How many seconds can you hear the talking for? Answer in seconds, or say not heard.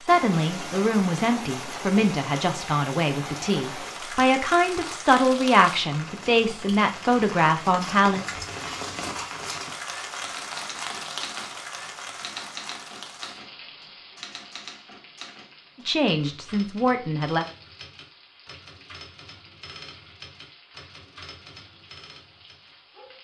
10 s.